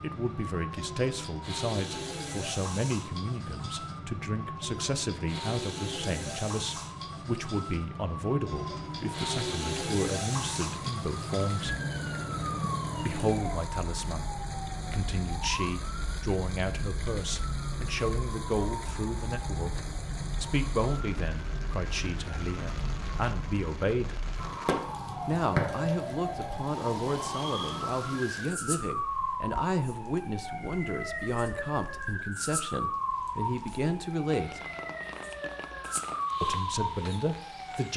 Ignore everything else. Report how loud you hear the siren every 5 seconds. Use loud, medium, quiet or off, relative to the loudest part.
medium, loud, loud, medium, medium, loud, loud, loud.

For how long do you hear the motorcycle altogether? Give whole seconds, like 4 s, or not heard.
not heard.